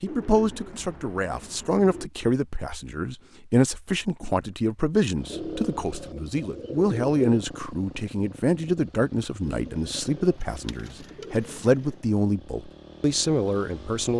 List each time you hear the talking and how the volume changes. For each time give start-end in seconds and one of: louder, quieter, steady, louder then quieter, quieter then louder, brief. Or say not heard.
0.0-14.1 steady.